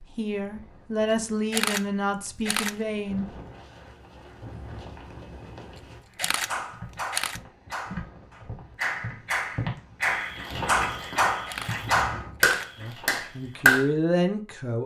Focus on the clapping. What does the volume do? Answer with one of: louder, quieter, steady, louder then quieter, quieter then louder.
louder.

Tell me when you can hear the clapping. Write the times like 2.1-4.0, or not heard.
6.5-13.8.